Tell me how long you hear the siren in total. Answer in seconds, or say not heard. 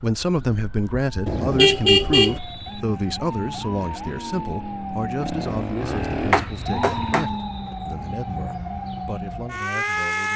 10 s.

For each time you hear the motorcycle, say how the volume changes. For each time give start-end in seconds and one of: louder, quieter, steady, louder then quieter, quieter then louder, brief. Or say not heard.
2.3-7.2 louder.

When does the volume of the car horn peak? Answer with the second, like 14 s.
2 s.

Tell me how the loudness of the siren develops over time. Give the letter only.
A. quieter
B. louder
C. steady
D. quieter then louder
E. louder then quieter
B.